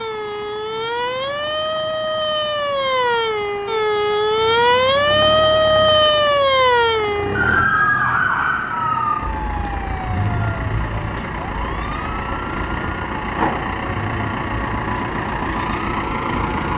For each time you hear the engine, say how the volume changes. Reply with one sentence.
You can hear the engine from 0.0 to 16.7 s, getting louder.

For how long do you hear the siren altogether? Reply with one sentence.
You can hear the siren for 17 seconds altogether.